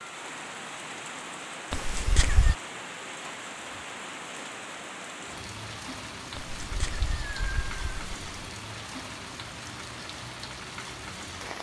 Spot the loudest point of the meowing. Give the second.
2 s.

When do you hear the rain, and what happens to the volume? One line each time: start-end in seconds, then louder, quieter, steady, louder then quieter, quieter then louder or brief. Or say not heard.
0.0-11.5 steady.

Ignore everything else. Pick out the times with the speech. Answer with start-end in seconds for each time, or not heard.
not heard.